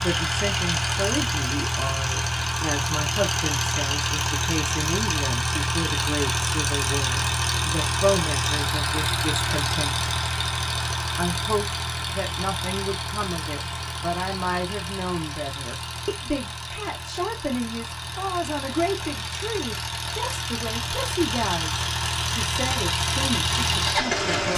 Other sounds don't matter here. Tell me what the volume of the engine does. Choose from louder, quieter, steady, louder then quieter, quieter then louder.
quieter then louder.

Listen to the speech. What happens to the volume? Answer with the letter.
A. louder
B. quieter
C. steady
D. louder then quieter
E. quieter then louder
C.